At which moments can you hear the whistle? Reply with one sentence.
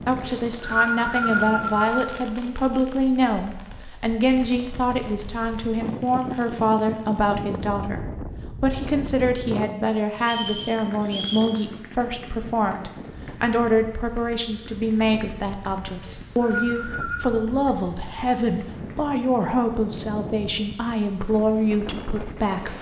The whistle can be heard from 0.2 to 2.1 s, from 10.2 to 11.5 s and from 16.0 to 17.2 s.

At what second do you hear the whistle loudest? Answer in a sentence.
The loudest moment of the whistle is at 1 second.